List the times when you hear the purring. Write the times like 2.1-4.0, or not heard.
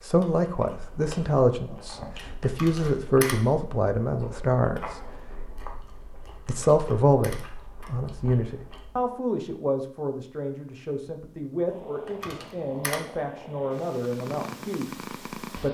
11.7-15.6.